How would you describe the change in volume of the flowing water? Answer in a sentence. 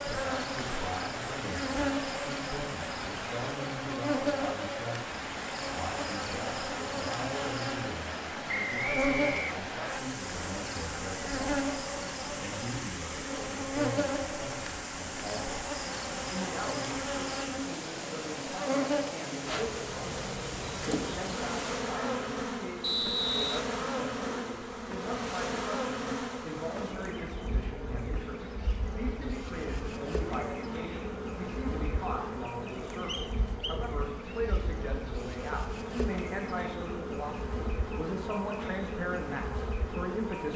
The loudness of the flowing water stays about the same.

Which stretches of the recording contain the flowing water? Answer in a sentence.
The flowing water can be heard from 0.0 to 21.9 s.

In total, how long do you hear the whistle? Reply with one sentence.
You can hear the whistle for 4 seconds altogether.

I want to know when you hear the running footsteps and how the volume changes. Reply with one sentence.
You can't hear the running footsteps here.